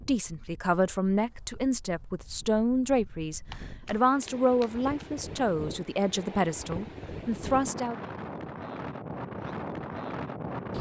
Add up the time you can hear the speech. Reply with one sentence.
You can hear the speech for 8 seconds altogether.